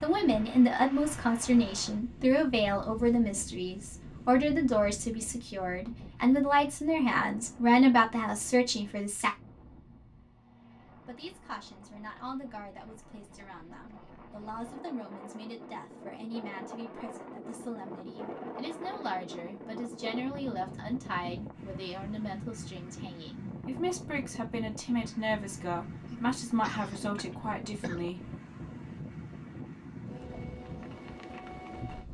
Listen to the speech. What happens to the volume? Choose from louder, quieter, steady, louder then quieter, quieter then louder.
quieter then louder.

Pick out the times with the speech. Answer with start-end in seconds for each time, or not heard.
0.0-9.3, 11.1-28.3.